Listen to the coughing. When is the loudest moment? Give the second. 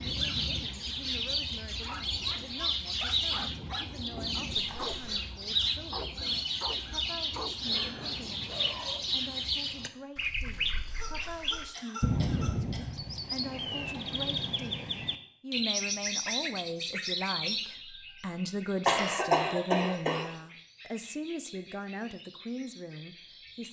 19 s.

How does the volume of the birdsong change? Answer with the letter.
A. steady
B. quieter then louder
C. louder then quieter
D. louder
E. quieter
E.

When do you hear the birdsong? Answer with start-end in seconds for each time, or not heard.
0.0-23.6.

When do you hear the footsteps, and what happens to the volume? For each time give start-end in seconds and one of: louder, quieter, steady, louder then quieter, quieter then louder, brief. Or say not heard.
not heard.